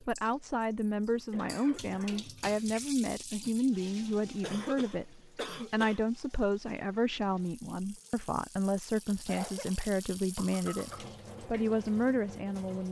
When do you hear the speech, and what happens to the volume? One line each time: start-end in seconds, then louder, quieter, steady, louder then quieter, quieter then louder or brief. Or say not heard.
0.0-12.8 steady.